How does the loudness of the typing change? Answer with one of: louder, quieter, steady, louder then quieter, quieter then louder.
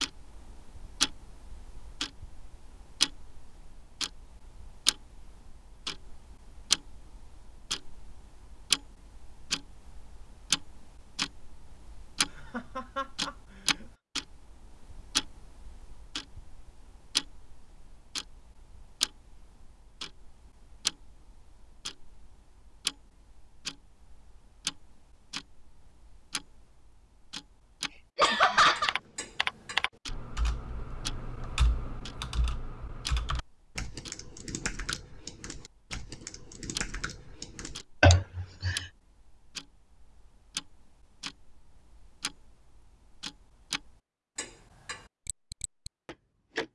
quieter.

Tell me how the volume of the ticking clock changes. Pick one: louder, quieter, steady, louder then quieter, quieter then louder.
quieter.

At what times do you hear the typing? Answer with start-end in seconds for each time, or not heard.
27.9-37.9.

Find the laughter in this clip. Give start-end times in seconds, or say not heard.
12.3-13.8, 28.1-28.9, 38.0-38.8.